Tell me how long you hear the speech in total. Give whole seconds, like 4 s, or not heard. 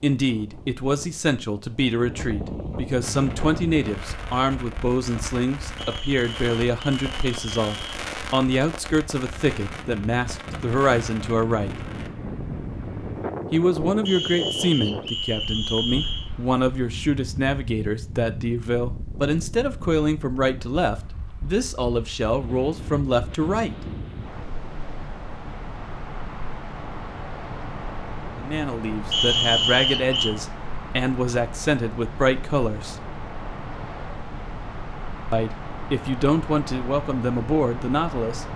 30 s.